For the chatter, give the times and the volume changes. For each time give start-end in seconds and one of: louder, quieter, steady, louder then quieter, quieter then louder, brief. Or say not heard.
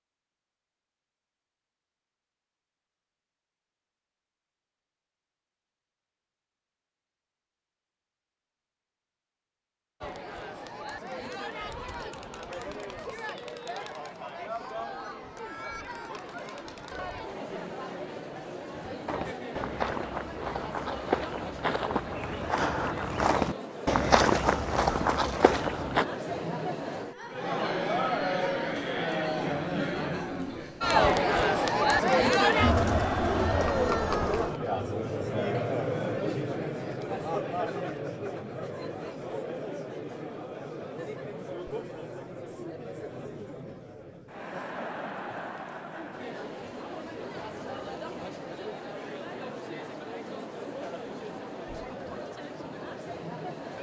10.0-53.7 louder then quieter.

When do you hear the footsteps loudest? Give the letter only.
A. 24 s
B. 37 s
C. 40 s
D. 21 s
A.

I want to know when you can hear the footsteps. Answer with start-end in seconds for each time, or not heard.
19.1-26.1.